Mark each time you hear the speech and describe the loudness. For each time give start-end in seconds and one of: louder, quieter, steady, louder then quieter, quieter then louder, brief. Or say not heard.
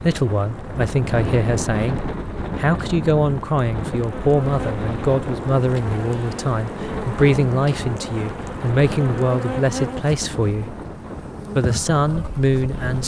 0.0-10.8 steady
11.6-13.0 brief.